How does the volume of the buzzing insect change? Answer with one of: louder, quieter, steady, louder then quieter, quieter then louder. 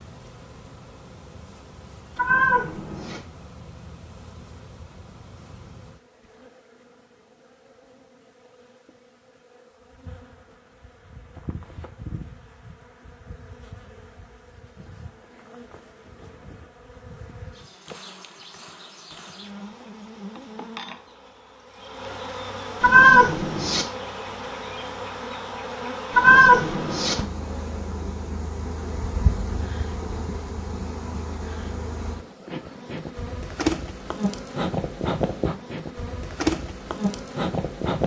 louder.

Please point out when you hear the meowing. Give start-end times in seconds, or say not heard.
2.1-3.2, 22.8-23.9, 26.1-27.1.